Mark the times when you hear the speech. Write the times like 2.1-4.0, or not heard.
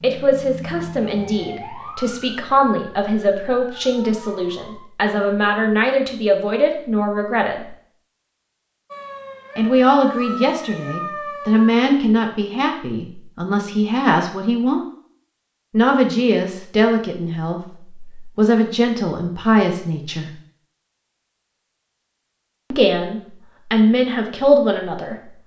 0.0-7.7, 9.6-14.8, 15.7-20.4, 22.7-25.3.